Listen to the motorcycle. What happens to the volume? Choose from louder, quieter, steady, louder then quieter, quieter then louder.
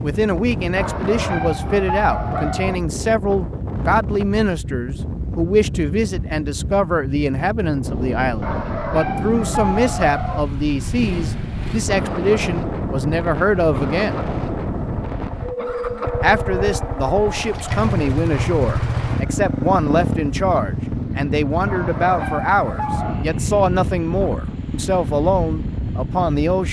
louder then quieter.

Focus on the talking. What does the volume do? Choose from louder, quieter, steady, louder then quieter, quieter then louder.
steady.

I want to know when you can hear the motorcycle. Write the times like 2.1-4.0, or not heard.
9.6-26.6.